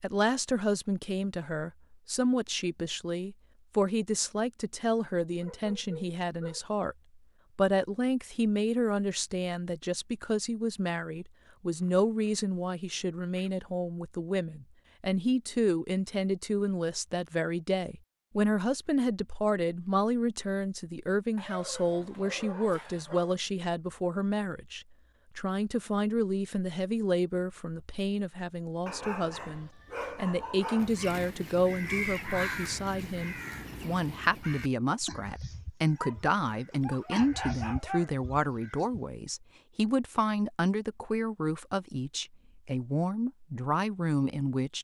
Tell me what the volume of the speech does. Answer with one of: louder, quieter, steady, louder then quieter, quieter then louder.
steady.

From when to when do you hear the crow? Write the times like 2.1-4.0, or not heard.
30.8-39.0.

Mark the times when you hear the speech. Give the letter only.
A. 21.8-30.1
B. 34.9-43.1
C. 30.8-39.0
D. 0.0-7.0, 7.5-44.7
D.